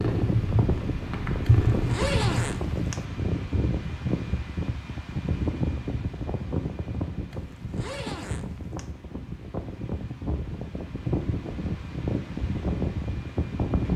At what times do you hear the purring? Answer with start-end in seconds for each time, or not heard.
0.0-2.5.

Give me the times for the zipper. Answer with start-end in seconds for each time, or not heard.
1.4-3.0, 7.3-8.9.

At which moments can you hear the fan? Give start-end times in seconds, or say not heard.
0.0-13.9.